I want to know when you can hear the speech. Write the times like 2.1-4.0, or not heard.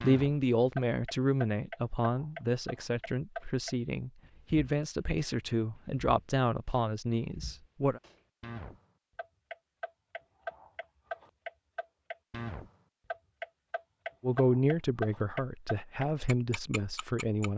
0.0-8.0, 14.2-17.5.